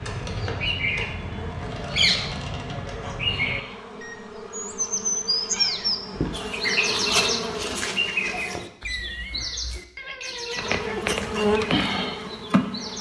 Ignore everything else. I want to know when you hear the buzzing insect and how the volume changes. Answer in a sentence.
You can hear the buzzing insect from 0.0 to 8.7 s, getting louder; and briefly from 10.6 to 12.9 s.